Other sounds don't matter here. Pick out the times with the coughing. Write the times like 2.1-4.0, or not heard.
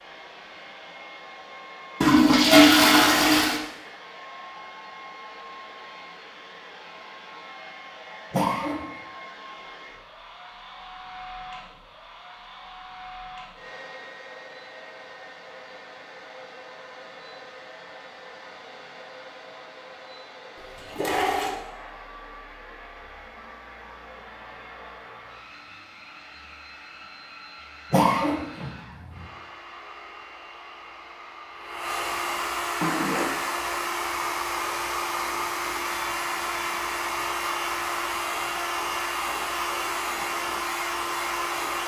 8.3-8.8, 27.9-29.2.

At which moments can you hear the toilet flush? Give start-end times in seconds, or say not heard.
2.0-3.6, 20.6-21.6, 32.8-33.4.